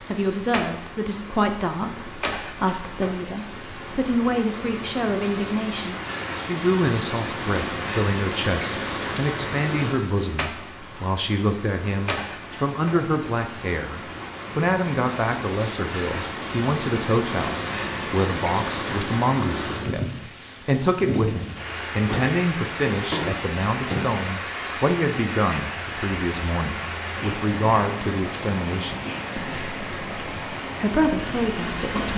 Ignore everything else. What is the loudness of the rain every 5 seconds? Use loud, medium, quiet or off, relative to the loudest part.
medium, loud, medium, loud, loud, loud, loud.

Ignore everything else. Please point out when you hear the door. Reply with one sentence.
The door can be heard from 22.1 to 24.1 s.